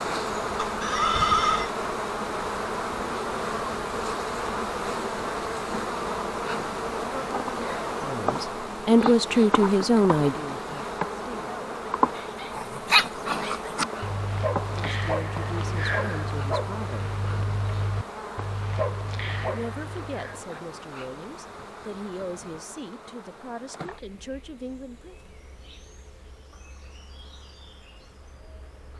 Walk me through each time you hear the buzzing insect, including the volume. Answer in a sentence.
The buzzing insect can be heard from 0.0 to 28.9 s, getting quieter.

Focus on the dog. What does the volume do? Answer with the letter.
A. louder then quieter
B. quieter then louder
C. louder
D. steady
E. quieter
E.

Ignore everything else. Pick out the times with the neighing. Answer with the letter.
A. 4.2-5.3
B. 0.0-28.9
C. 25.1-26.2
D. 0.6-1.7
D.